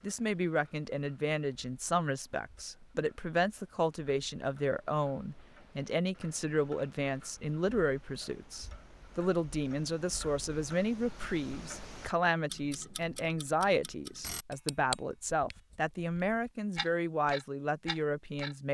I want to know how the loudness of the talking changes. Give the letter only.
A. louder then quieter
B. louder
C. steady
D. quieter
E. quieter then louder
C.